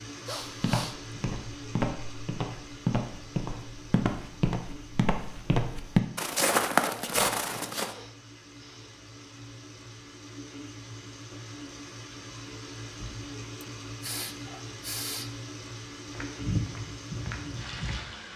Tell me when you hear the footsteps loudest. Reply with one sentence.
The loudest moment of the footsteps is at 7 seconds.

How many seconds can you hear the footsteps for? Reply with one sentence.
You can hear the footsteps for 10 seconds altogether.